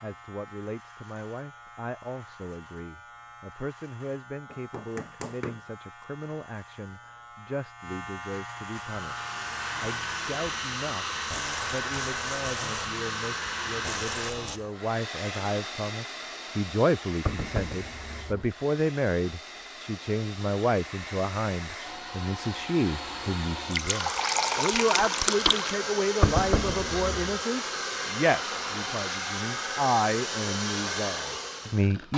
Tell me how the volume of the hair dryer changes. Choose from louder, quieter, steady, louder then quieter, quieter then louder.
quieter then louder.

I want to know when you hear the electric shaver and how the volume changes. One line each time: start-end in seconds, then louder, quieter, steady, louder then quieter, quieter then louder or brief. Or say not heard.
0.0-14.6 louder.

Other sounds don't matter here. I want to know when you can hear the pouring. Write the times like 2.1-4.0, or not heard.
23.7-25.8.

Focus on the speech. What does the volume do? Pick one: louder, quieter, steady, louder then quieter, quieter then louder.
louder.